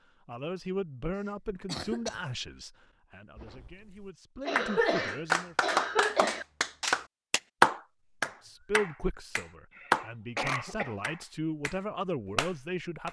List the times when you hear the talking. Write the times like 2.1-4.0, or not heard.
0.2-5.5, 8.4-13.0.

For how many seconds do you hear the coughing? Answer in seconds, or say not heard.
4 s.